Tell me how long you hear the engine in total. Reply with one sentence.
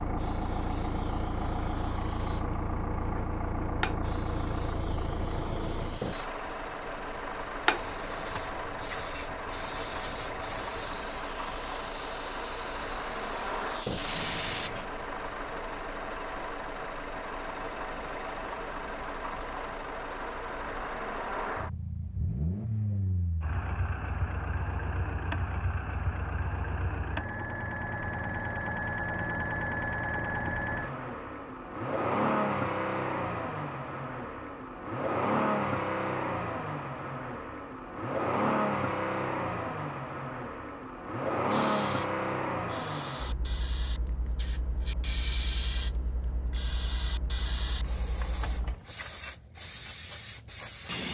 You can hear the engine for 49 seconds altogether.